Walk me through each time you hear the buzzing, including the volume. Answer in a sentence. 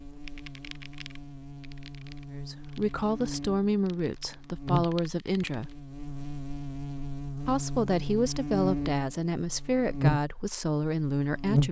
The buzzing can be heard from 0.0 to 11.6 s, getting louder.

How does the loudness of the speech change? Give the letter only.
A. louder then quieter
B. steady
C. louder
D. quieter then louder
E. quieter
B.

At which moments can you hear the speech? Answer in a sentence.
You can hear the speech from 2.3 to 5.8 s and from 7.5 to 11.6 s.